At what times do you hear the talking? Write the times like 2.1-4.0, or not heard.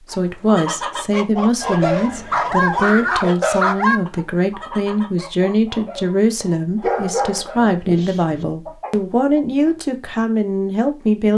0.0-11.3.